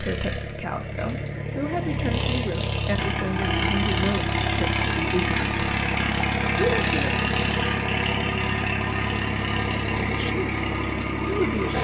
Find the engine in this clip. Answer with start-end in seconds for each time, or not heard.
0.0-11.7.